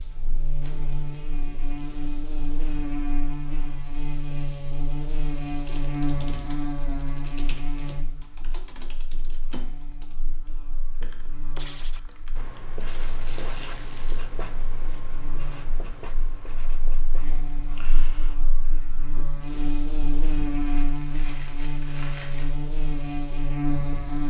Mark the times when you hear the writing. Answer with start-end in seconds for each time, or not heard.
11.6-19.5.